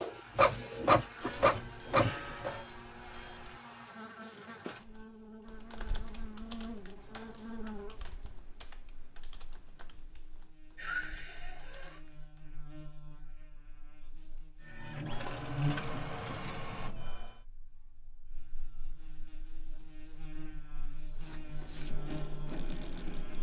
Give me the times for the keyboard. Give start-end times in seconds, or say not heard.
4.8-12.4.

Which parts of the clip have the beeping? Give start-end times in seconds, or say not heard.
1.2-3.5.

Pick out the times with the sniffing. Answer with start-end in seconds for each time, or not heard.
10.8-12.0.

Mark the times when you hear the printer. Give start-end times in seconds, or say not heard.
0.0-2.6, 14.6-17.4, 21.1-23.3.